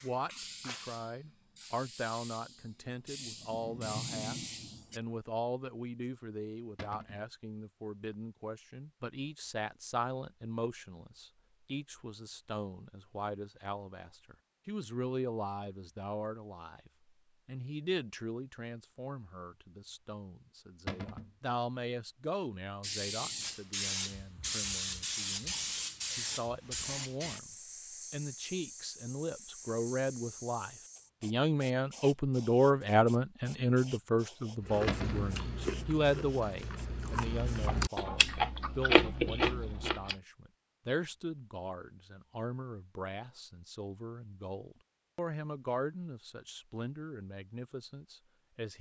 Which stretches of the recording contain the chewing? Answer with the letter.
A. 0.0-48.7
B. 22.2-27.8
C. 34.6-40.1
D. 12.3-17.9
C.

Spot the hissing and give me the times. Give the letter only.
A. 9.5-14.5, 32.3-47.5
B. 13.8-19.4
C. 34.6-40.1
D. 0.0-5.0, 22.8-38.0
D.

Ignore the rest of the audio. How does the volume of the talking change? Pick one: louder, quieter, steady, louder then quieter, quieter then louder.
louder then quieter.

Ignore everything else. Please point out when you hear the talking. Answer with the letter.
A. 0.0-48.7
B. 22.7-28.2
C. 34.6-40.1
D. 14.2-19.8
A.